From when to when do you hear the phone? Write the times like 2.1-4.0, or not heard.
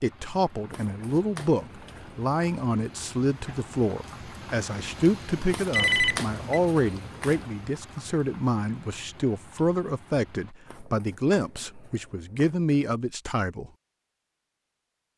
5.7-6.6.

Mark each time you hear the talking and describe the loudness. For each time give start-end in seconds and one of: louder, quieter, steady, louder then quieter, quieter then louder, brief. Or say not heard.
0.0-13.7 steady.